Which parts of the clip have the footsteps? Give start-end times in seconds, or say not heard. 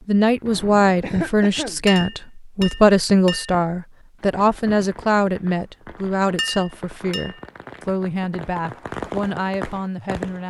not heard.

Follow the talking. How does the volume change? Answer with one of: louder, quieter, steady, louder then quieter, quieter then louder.
quieter.